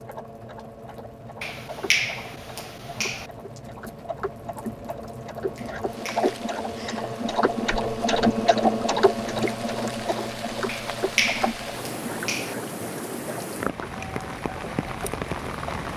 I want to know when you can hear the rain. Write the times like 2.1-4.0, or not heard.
0.0-15.9.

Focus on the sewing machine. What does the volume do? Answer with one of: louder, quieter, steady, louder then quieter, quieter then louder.
louder then quieter.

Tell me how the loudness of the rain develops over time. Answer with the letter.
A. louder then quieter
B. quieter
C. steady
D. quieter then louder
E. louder
E.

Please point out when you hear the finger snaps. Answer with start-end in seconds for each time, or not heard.
1.4-3.2, 5.5-6.3, 10.7-12.6.